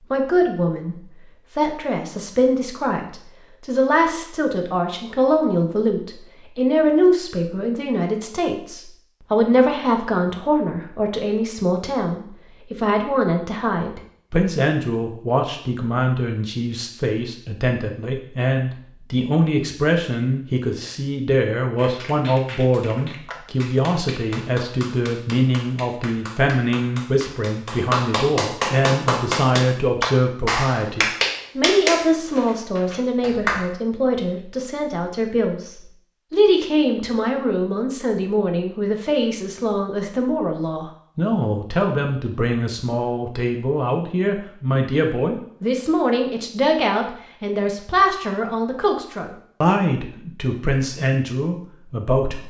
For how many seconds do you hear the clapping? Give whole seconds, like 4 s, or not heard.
12 s.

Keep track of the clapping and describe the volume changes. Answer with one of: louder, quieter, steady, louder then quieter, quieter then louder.
louder.